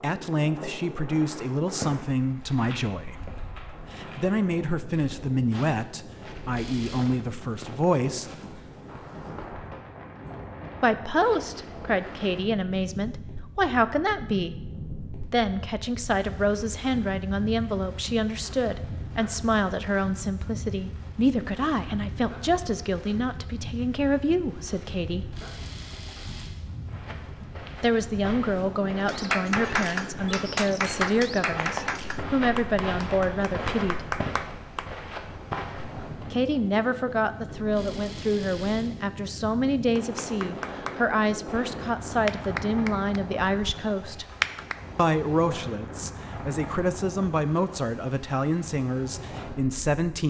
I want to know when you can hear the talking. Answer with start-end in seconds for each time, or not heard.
0.0-8.3, 10.8-14.6, 15.3-25.4, 27.8-34.0, 36.3-44.2, 45.0-50.2.